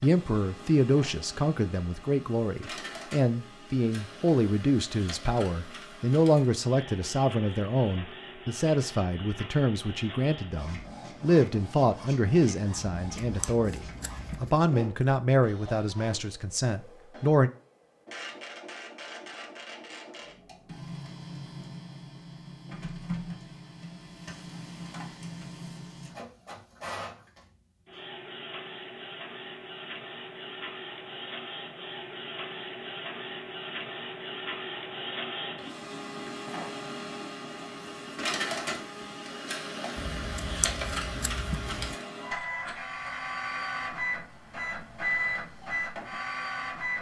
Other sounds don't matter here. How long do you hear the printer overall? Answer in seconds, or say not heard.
47 s.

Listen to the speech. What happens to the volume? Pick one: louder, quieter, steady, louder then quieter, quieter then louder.
steady.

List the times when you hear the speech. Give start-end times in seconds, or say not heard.
0.0-17.5.